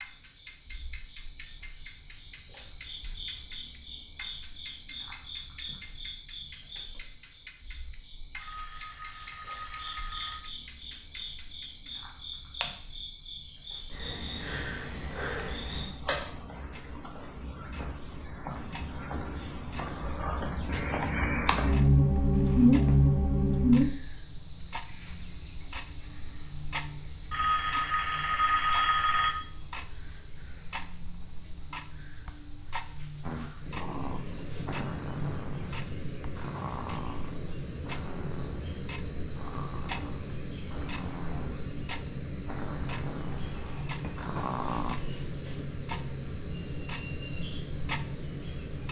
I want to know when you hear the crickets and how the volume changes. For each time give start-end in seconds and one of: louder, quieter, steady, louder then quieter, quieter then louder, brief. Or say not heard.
0.0-48.8 louder then quieter.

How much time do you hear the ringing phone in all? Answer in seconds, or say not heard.
4 s.